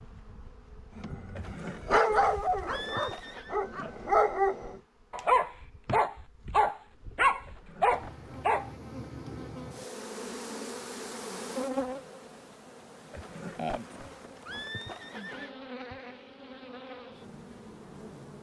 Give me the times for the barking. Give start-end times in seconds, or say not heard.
0.9-8.7.